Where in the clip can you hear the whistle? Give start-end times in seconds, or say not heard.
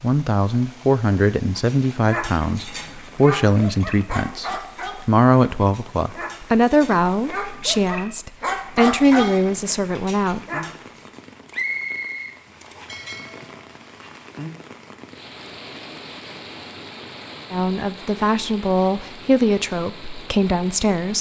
11.5-12.8.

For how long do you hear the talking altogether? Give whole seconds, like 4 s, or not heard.
14 s.